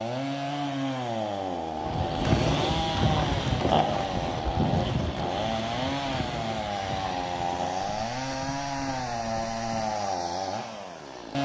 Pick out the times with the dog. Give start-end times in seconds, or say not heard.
not heard.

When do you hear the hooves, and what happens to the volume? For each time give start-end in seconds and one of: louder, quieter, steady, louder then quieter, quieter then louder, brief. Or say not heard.
1.8-10.0 quieter.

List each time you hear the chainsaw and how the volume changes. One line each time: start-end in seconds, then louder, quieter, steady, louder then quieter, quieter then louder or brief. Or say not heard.
0.0-11.4 steady.